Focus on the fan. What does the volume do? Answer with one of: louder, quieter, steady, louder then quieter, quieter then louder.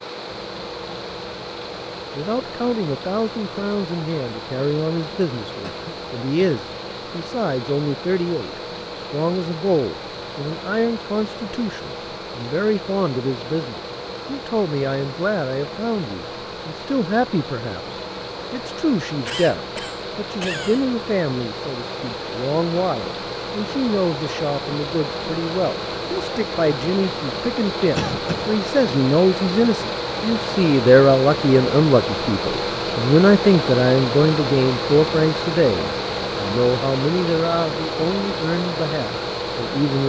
louder.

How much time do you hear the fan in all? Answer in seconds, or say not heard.
40 s.